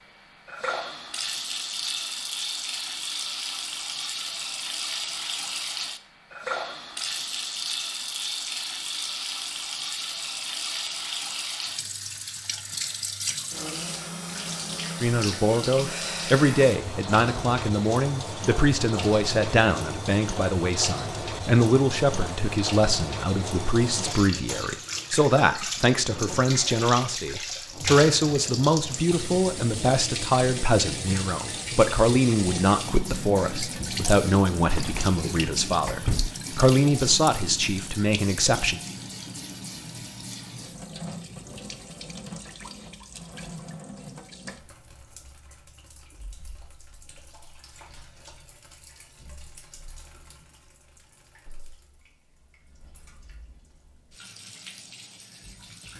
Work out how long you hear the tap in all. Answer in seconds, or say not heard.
56 s.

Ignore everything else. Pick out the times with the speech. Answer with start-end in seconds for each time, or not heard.
15.0-38.8.